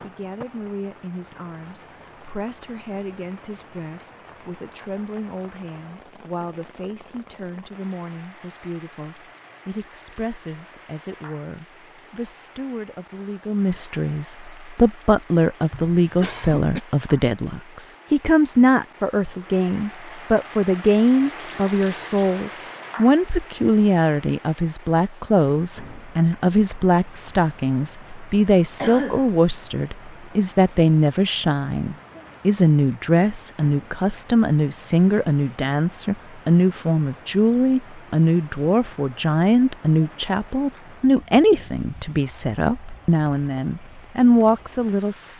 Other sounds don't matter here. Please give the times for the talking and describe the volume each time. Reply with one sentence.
The talking can be heard from 0.0 to 45.3 s, getting louder.